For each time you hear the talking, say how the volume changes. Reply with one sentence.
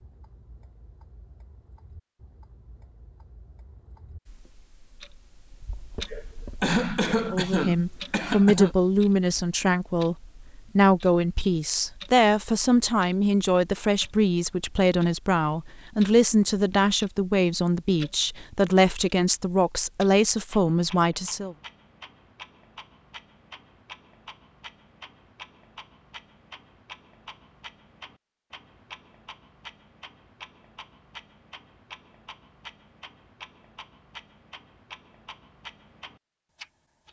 You can hear the talking from 7.3 to 21.6 s, at a steady volume.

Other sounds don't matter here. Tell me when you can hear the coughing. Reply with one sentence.
The coughing can be heard from 6.0 to 8.8 s.